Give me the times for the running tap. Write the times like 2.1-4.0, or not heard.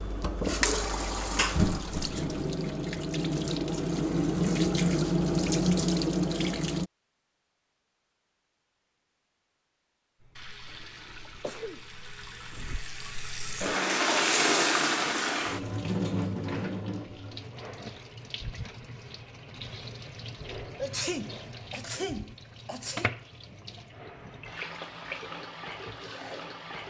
0.0-6.9, 10.2-26.8.